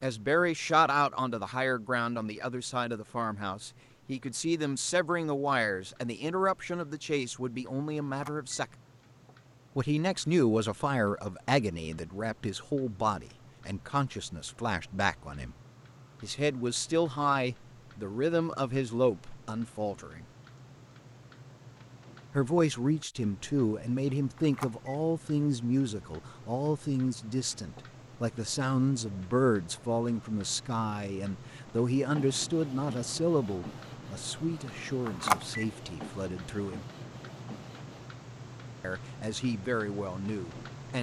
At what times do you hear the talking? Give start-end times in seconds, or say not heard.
0.0-8.7, 9.8-15.6, 16.2-20.2, 22.3-36.9, 38.8-40.9.